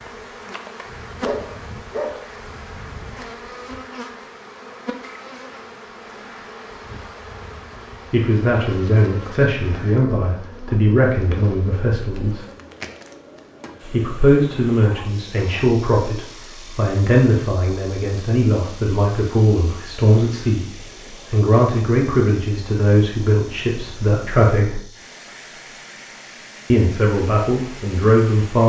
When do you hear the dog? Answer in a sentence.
The dog can be heard from 1.2 to 2.2 s and from 14.8 to 15.7 s.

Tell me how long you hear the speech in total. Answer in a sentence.
The speech can be heard for 17 seconds in total.